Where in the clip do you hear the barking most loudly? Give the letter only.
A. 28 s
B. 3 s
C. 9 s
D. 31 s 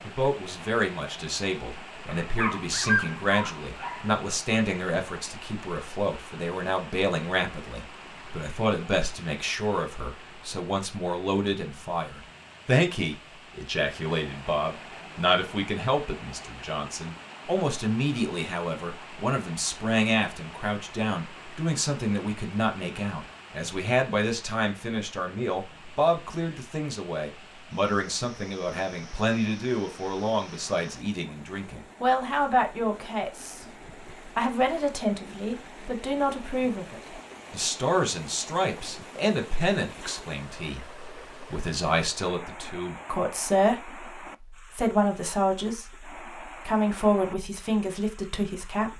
B.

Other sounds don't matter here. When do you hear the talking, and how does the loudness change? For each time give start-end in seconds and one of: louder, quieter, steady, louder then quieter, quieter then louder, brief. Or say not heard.
0.1-48.9 steady.